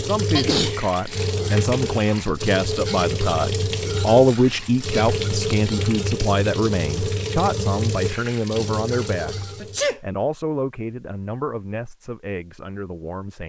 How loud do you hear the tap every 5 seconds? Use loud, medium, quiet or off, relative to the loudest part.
loud, loud, off.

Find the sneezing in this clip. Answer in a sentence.
The sneezing can be heard from 0.3 to 1.3 s and from 9.6 to 10.0 s.